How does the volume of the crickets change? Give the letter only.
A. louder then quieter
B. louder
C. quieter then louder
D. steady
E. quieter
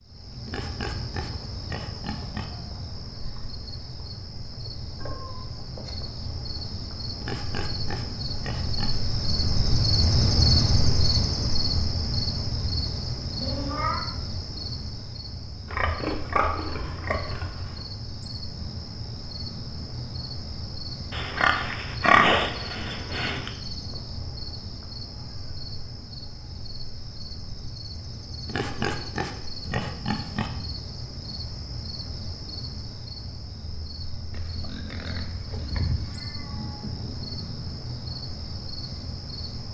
A.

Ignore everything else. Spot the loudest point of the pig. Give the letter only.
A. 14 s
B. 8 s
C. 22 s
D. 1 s
C.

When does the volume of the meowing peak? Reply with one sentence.
The loudest moment of the meowing is at 14 seconds.